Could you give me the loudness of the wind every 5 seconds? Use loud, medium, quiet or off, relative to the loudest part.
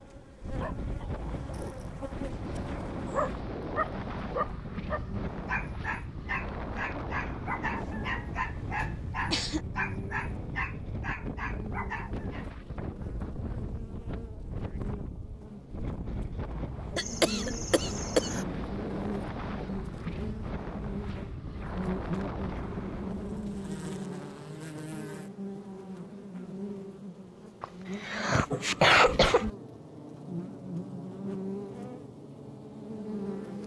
loud, loud, loud, loud, loud, off, off.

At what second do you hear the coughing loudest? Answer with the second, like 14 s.
29 s.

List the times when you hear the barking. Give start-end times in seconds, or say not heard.
0.6-12.4.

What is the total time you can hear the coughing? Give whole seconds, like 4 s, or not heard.
5 s.